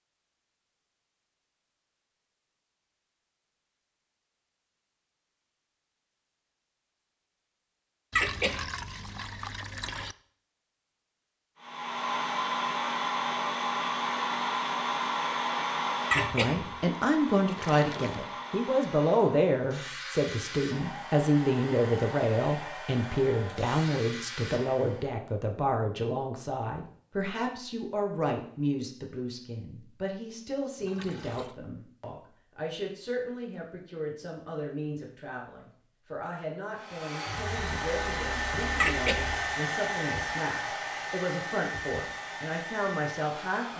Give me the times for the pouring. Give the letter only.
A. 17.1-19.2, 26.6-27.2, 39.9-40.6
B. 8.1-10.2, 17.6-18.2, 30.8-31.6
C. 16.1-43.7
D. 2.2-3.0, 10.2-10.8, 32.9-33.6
B.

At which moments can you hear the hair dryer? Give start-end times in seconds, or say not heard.
11.6-25.1, 36.8-43.7.